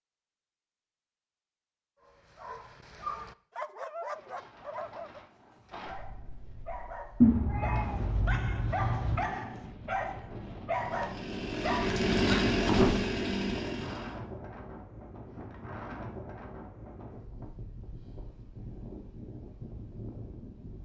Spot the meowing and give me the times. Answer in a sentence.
The meowing can be heard from 7.2 to 9.2 s.